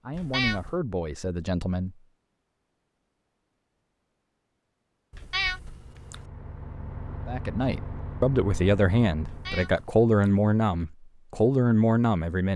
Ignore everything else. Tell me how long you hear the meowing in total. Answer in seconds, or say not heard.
3 s.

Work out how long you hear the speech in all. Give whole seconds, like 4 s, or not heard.
7 s.